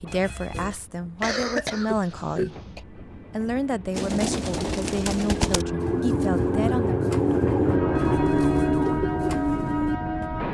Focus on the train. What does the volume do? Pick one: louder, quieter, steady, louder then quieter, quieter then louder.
louder.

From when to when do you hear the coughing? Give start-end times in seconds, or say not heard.
1.2-2.8.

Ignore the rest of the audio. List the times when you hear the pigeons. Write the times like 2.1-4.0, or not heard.
3.9-10.3.